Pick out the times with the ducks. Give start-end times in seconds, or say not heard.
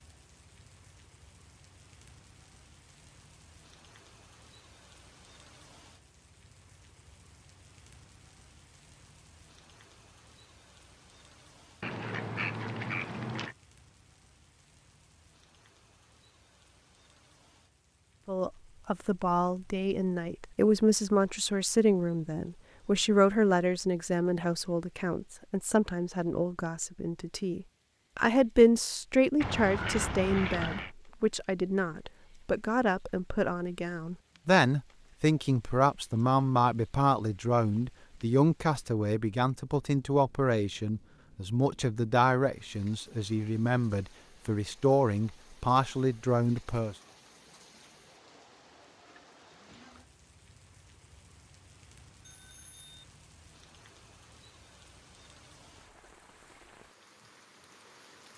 11.8-13.6, 29.4-30.9.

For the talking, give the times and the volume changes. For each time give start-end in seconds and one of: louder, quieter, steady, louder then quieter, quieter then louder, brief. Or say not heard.
18.2-47.0 steady.